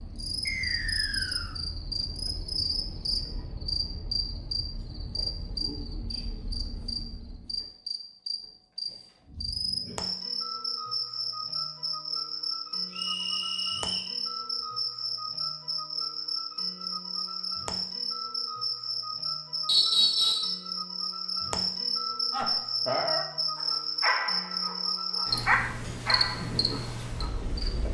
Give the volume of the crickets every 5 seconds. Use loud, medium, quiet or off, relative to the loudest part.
loud, medium, loud, loud, loud, loud.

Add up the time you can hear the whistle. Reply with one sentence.
The whistle can be heard for 3 seconds in total.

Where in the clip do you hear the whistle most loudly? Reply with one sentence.
The loudest moment of the whistle is at 20 seconds.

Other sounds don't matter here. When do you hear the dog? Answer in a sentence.
The dog can be heard from 22.3 to 27.4 s.